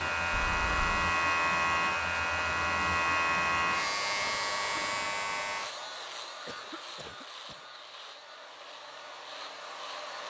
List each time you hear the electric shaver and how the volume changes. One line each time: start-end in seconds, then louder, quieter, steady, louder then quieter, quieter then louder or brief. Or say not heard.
0.0-10.2 quieter.